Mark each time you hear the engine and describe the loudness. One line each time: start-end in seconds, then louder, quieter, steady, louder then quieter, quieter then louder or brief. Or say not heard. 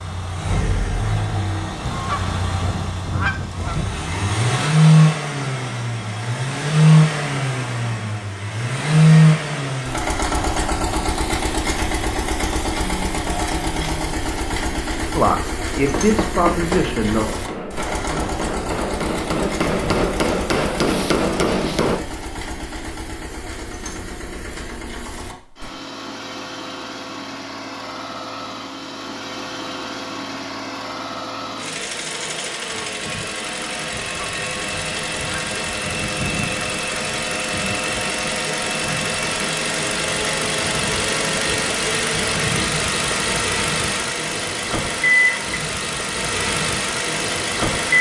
0.0-47.9 quieter then louder.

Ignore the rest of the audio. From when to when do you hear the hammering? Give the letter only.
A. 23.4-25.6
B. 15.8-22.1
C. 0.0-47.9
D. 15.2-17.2
B.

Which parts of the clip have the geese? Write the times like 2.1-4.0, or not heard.
1.8-3.9, 33.9-36.6.